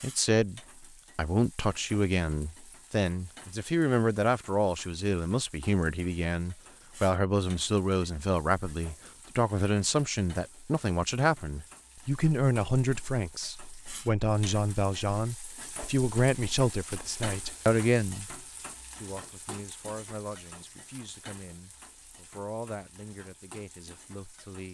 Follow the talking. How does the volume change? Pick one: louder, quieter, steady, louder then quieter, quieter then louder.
quieter.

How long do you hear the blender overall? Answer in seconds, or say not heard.
not heard.